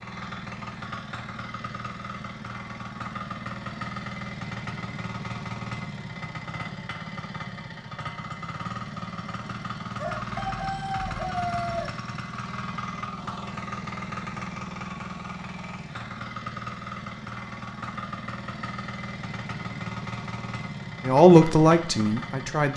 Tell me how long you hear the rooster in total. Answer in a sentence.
The rooster can be heard for 2 seconds in total.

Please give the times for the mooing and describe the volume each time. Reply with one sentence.
You can't hear the mooing here.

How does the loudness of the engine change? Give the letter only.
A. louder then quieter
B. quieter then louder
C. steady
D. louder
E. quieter
C.